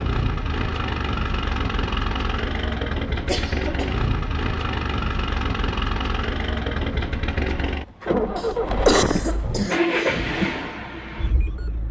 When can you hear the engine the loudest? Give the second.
10 s.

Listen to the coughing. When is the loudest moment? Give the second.
9 s.